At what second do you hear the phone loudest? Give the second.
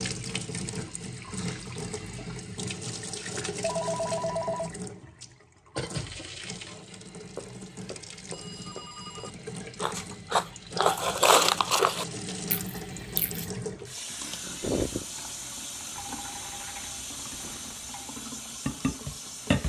4 s.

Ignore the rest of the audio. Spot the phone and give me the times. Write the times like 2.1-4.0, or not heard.
3.6-4.7, 7.3-9.3, 15.9-18.1.